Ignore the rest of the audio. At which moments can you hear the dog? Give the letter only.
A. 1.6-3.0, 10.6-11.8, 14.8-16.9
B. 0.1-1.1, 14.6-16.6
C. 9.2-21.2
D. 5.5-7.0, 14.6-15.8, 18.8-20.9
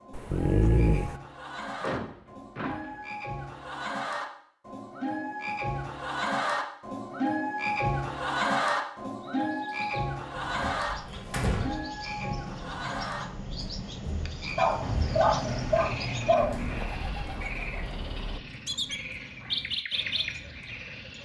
B.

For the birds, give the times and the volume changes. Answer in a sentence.
The birds can be heard from 9.2 to 21.2 s, getting louder.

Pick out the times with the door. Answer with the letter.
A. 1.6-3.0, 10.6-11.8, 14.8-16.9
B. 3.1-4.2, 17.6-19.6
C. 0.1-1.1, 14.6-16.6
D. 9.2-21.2
A.